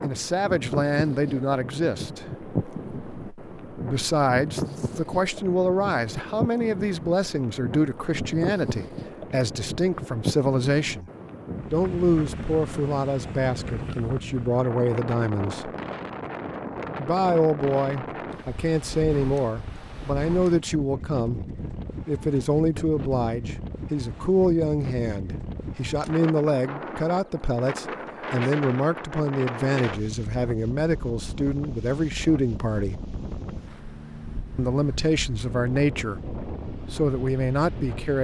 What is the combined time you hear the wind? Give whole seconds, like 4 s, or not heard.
38 s.